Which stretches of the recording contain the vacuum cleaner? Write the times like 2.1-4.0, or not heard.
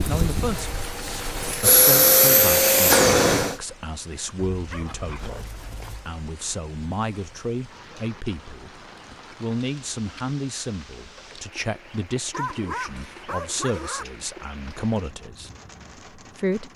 0.1-3.6.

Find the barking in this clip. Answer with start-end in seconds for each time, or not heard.
4.5-6.1, 12.3-14.1.